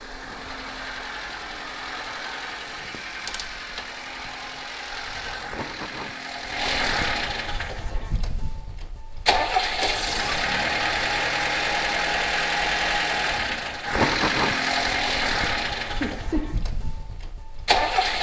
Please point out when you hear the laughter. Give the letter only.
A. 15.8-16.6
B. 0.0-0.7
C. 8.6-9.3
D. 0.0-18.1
A.